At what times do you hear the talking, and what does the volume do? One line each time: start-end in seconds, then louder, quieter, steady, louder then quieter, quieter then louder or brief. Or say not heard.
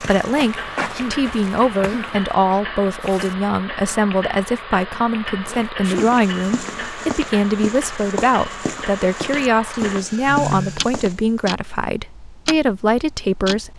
0.0-13.7 steady.